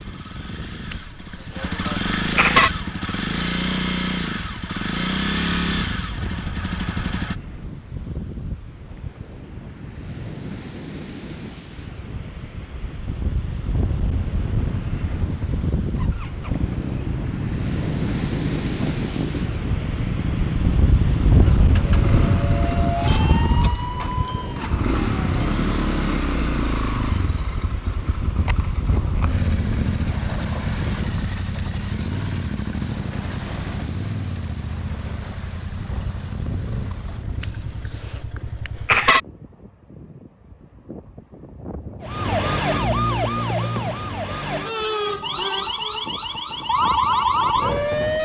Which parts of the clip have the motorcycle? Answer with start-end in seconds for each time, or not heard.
0.0-7.3, 15.0-39.1.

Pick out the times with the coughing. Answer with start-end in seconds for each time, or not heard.
0.9-2.7, 37.4-39.2.